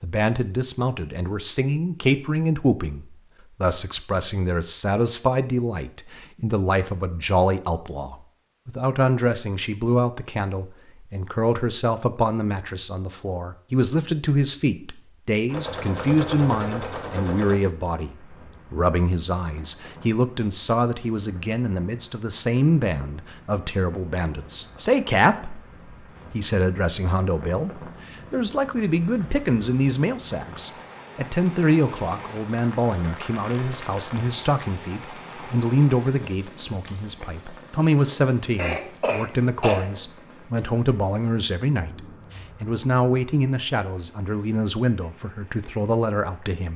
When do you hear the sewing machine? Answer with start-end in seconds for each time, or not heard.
15.4-17.6.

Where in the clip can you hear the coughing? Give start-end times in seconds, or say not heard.
38.5-39.9.